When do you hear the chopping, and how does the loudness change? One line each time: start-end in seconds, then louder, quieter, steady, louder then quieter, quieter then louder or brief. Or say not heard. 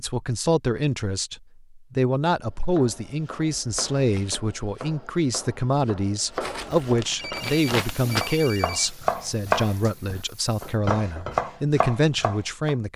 2.5-12.8 louder.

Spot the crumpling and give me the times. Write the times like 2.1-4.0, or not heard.
6.4-8.2.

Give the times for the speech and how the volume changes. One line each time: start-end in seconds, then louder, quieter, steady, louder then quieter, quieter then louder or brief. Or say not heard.
0.0-12.9 steady.